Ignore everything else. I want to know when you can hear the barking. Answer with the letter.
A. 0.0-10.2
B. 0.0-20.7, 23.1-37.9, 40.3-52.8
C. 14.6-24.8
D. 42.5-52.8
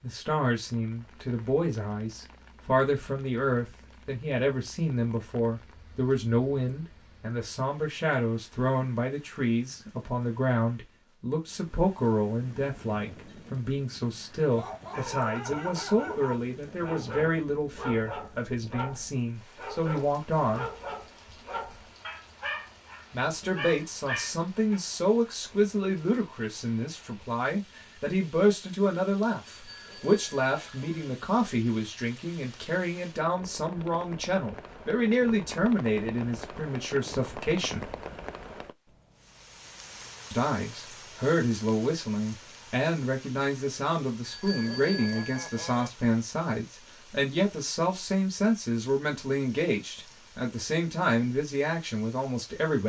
C.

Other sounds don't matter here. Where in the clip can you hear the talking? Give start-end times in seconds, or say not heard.
0.0-20.7, 23.1-37.9, 40.3-52.8.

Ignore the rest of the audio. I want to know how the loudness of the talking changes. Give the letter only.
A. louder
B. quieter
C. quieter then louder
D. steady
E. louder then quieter
D.